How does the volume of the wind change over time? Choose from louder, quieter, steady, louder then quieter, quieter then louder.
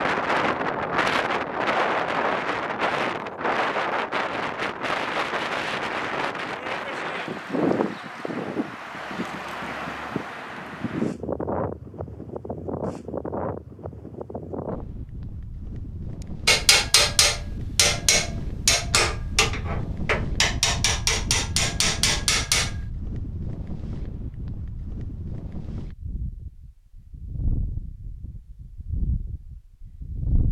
quieter.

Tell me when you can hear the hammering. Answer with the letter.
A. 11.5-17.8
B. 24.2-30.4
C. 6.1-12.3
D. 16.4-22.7
D.